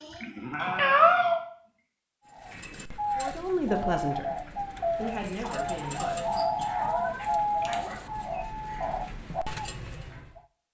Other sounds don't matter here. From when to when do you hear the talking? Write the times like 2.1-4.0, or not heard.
3.1-6.5.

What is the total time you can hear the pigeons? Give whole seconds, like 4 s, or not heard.
8 s.